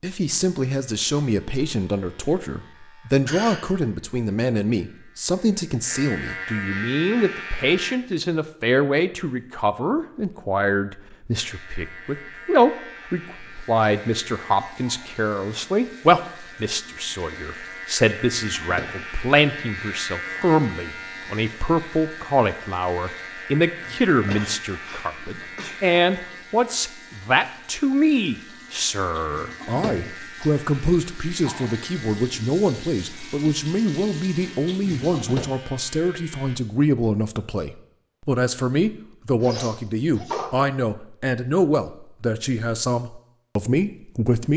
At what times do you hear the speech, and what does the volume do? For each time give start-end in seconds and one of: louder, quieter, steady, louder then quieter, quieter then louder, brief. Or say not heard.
0.0-44.5 steady.